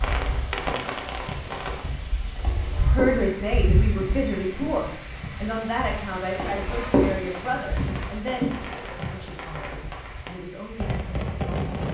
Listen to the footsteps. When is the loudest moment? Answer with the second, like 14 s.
7 s.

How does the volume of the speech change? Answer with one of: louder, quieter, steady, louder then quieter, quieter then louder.
quieter.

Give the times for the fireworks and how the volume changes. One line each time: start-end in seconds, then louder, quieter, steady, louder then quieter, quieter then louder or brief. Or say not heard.
0.0-1.9 brief
7.2-11.8 louder.